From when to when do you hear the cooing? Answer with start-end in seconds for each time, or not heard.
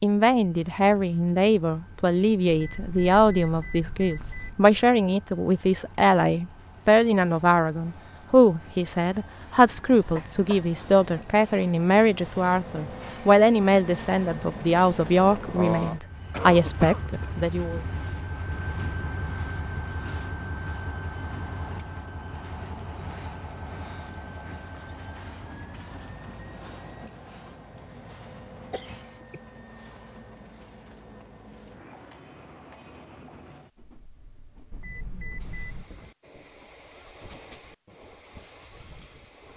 not heard.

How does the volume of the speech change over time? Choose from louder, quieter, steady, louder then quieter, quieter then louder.
steady.